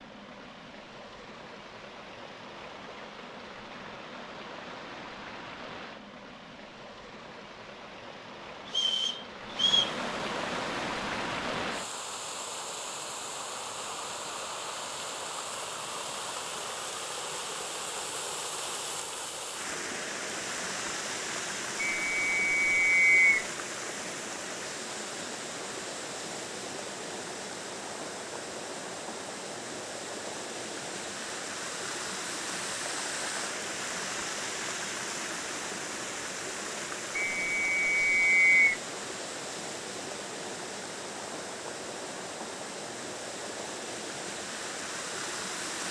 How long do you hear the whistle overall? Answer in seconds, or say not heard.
4 s.